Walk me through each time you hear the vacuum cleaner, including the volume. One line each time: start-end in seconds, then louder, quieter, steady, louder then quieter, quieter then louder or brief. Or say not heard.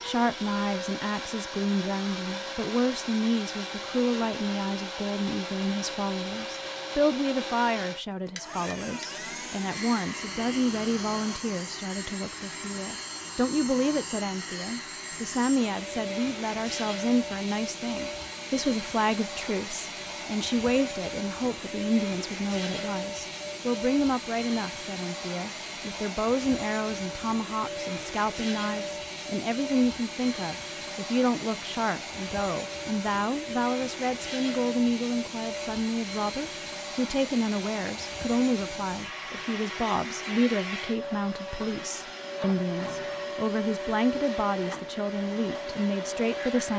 0.0-46.7 steady.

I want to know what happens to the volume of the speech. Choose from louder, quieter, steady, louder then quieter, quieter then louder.
steady.